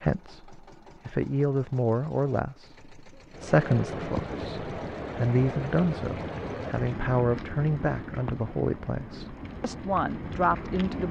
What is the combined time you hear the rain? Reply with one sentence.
You can hear the rain for 8 seconds altogether.